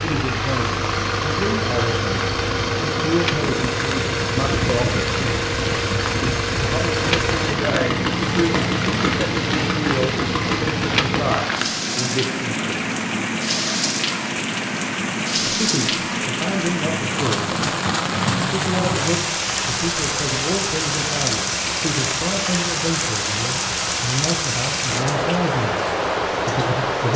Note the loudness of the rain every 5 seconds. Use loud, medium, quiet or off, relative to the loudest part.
medium, medium, loud, loud, loud, loud.